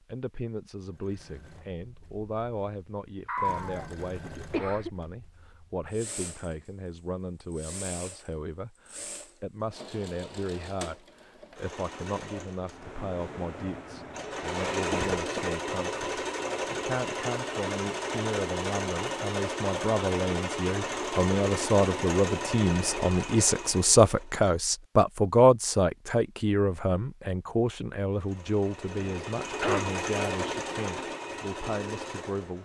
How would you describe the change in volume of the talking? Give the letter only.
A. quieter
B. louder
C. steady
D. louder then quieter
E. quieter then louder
D.